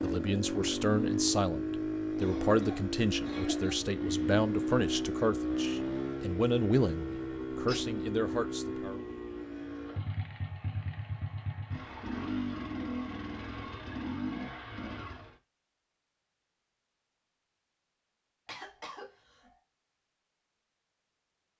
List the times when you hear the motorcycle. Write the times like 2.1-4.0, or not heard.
0.0-15.3.